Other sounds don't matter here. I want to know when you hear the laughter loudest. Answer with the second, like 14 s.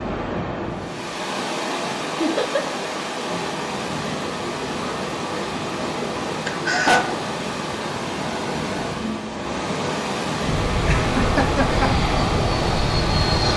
7 s.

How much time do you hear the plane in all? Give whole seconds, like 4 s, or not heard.
3 s.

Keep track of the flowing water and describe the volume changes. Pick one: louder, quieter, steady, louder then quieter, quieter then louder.
steady.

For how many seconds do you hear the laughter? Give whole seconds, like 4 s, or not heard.
2 s.